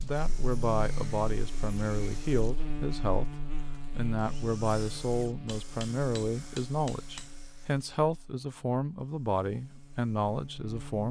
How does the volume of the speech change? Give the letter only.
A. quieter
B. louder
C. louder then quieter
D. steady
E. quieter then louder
D.